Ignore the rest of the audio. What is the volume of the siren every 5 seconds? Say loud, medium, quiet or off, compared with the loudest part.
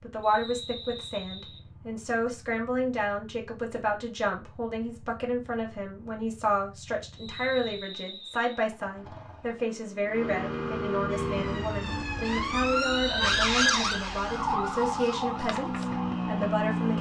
off, off, loud, medium.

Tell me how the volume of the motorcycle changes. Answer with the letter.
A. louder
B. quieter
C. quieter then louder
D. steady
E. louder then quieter
A.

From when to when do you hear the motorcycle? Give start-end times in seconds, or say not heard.
0.0-16.9.